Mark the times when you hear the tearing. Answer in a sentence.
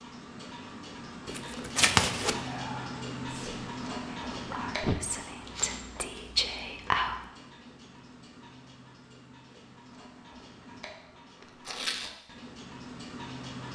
You can hear the tearing from 1.2 to 2.4 s, from 5.4 to 6.9 s and from 11.4 to 12.1 s.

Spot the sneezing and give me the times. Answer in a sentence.
The sneezing can be heard from 4.5 to 5.0 s.